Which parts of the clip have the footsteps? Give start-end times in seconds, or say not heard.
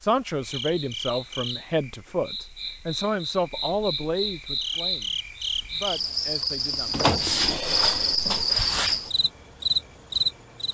not heard.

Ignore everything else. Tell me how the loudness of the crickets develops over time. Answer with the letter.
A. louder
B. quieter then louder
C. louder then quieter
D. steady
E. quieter
A.